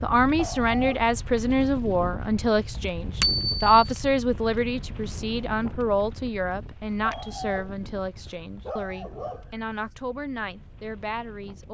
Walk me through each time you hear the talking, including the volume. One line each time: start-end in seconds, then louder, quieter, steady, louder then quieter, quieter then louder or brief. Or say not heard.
0.0-11.6 quieter.